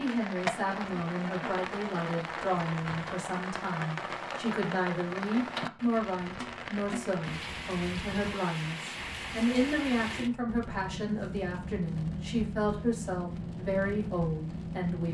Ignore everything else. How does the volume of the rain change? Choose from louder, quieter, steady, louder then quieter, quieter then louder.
steady.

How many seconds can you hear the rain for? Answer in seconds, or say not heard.
15 s.